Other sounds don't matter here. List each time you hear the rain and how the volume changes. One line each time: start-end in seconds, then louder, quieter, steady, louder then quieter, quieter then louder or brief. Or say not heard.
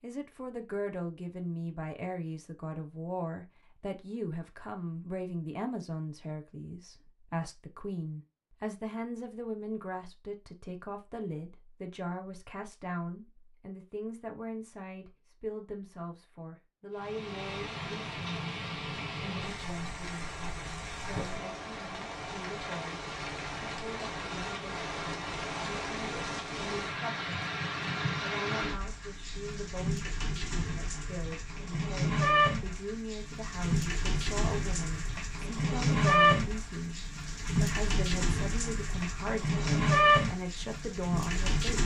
16.9-41.8 louder.